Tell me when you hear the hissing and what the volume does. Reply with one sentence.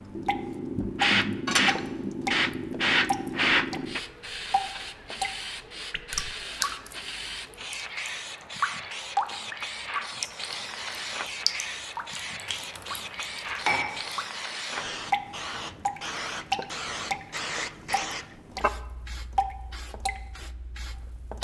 The hissing can be heard from 0.0 to 21.3 s, getting quieter.